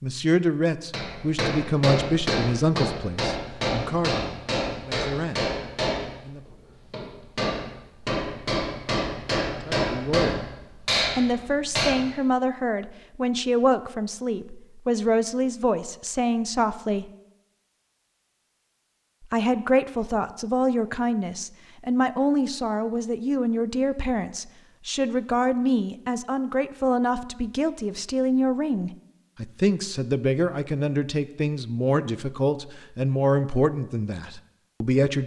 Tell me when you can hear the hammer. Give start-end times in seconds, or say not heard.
0.9-12.1.